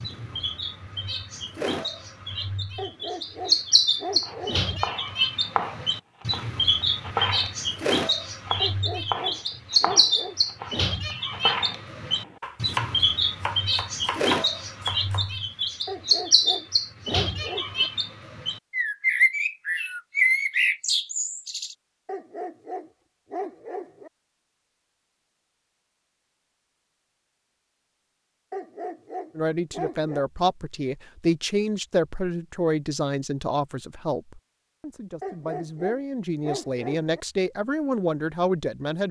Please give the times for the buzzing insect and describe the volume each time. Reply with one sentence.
You can't hear the buzzing insect here.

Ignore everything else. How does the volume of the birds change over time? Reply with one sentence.
The loudness of the birds stays about the same.